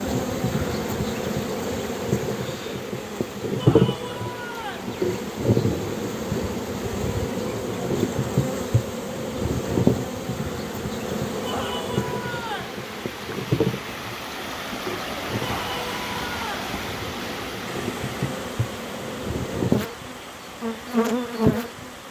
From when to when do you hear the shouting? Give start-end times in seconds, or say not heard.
3.5-4.9, 11.4-12.8, 15.4-16.5.